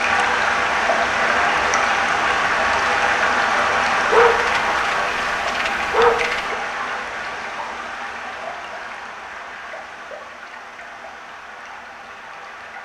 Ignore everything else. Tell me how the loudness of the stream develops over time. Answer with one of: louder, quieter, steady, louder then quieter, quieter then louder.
quieter.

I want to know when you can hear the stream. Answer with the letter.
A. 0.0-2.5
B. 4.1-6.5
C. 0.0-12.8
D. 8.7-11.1
C.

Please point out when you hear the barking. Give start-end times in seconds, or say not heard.
4.1-6.5.